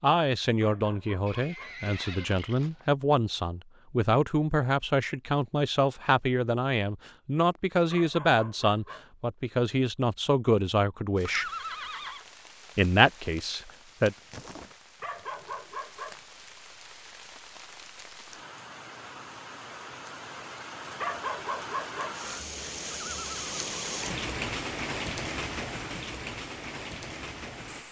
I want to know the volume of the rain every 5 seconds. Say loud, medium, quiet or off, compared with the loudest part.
off, off, quiet, medium, loud, loud.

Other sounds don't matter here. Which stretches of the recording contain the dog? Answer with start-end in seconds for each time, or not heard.
0.6-1.8, 7.9-9.1, 15.0-16.2, 21.0-22.2.